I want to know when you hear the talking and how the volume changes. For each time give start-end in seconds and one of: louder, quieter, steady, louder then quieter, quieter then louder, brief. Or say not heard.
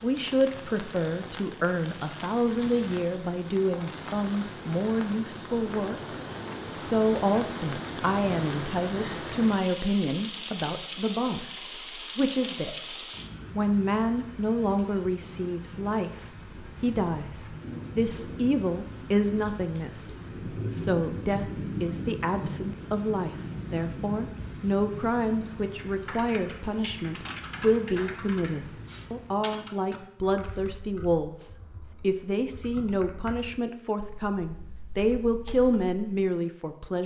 0.0-6.2 steady
6.8-37.0 steady.